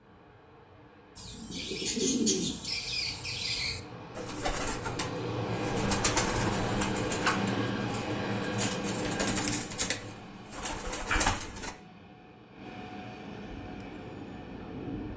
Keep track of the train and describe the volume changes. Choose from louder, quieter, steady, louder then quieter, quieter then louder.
louder then quieter.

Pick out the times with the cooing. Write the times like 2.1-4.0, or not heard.
1.1-11.8.